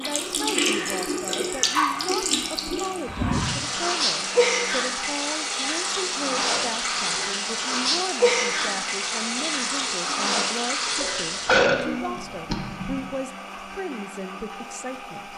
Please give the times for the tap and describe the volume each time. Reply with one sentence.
The tap can be heard from 0.0 to 11.6 s, at a steady volume.